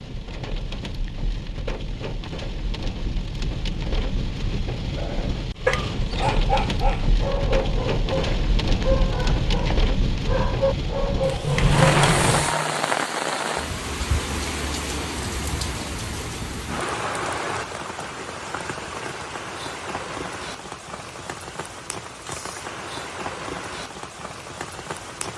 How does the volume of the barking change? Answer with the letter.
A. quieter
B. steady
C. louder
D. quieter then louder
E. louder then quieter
D.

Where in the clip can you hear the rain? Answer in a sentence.
The rain can be heard from 0.0 to 25.3 s.